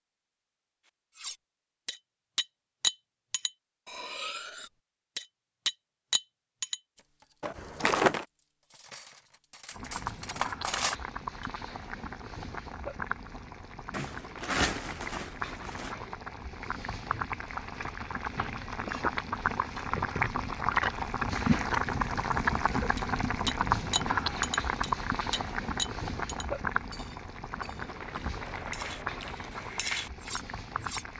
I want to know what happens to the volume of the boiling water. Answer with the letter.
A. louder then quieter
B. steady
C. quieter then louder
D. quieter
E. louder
A.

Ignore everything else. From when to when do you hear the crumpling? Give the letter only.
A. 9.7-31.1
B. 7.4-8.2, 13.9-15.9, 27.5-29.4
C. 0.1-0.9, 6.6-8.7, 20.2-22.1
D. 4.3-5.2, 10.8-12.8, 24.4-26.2
B.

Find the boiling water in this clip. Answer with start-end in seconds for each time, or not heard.
9.7-31.1.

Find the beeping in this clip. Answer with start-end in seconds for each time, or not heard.
not heard.